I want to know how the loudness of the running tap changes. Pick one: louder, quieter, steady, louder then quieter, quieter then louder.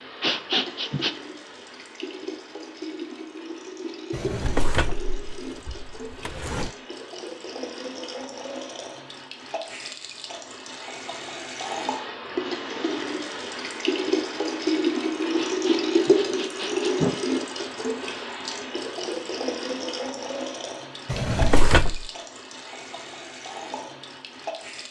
louder then quieter.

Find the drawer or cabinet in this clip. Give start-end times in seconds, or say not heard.
4.1-6.7, 21.1-22.0.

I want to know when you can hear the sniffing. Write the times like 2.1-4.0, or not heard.
0.2-1.1, 15.3-17.2.